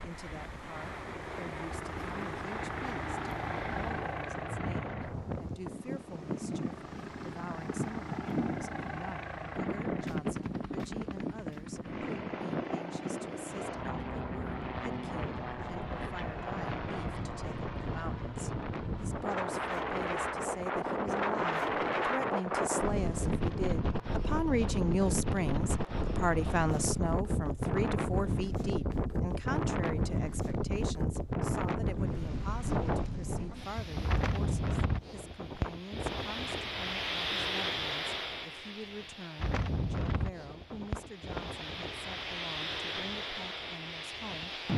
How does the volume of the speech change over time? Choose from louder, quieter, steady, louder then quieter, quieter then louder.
louder then quieter.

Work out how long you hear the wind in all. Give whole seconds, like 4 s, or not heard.
45 s.